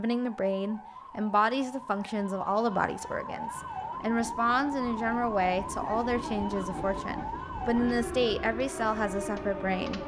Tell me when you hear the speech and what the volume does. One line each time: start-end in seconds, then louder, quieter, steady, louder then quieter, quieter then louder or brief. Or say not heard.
0.0-10.0 steady.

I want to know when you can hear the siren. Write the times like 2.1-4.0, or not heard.
0.0-10.0.